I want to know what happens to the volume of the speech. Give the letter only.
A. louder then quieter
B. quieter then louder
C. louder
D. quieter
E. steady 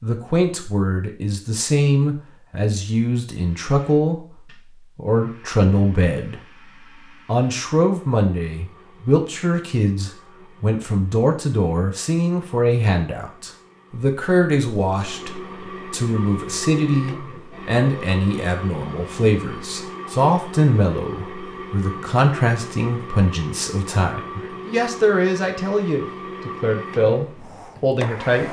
E.